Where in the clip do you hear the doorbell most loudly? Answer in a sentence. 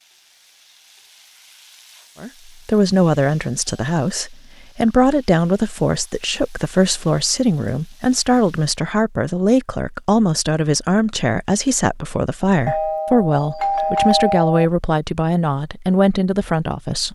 The loudest moment of the doorbell is at 14 seconds.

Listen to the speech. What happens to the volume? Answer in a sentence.
The volume of the speech stays about the same.